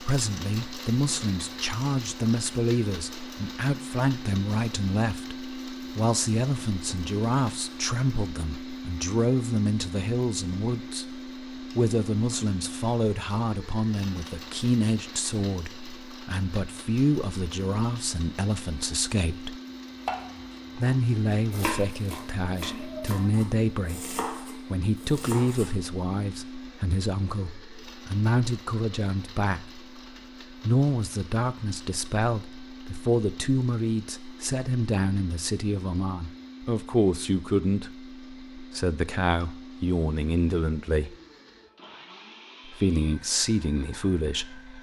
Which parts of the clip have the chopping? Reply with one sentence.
The chopping can be heard from 19.9 to 25.8 s.